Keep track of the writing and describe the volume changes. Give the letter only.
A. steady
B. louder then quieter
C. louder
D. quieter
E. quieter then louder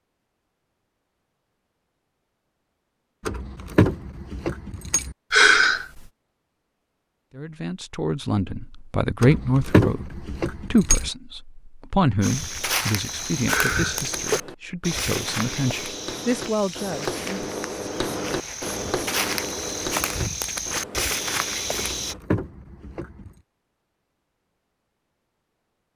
B.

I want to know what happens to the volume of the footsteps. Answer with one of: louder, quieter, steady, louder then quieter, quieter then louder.
quieter then louder.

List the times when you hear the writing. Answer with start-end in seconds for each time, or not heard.
13.7-22.2.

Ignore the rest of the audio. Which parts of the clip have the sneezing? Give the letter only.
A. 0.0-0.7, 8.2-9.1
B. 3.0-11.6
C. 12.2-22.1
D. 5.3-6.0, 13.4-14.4
D.